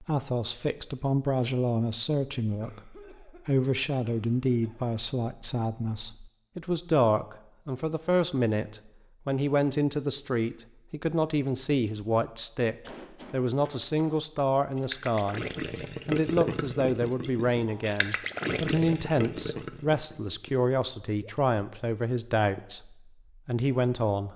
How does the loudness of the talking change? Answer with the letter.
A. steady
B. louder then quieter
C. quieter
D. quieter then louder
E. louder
A.